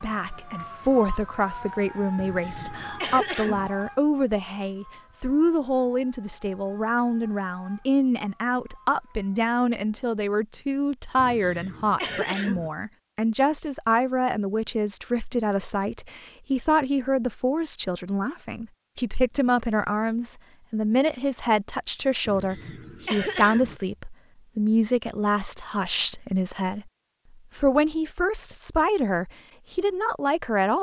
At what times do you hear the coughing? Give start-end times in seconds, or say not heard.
2.1-3.7, 11.2-12.7, 22.2-23.8.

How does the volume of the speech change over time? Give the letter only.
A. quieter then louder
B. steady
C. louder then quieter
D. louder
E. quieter
B.